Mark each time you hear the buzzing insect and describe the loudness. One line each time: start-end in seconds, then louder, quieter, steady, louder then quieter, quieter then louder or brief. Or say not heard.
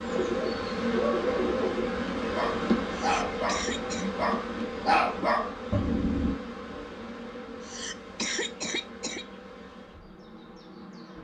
0.0-11.1 quieter.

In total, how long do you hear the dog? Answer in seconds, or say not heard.
6 s.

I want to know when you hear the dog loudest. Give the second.
5 s.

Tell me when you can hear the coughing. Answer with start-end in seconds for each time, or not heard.
2.9-4.1, 7.6-9.2.